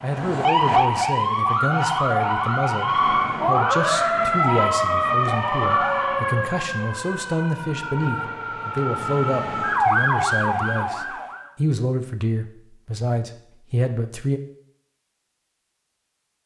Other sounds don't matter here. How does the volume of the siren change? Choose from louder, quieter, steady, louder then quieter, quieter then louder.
quieter then louder.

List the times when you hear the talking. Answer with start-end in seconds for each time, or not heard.
0.0-14.4.